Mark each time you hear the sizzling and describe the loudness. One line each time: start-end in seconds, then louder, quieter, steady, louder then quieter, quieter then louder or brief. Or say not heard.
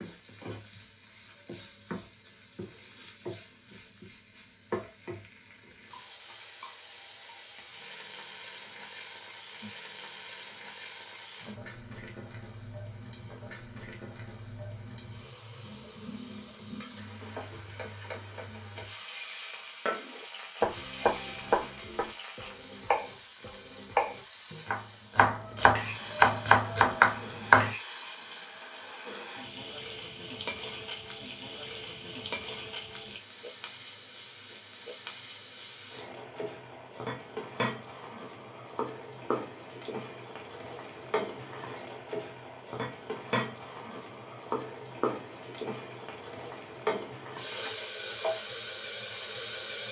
0.0-49.8 louder.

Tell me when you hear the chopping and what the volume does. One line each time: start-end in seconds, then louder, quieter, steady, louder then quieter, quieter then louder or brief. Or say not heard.
19.9-27.8 quieter then louder.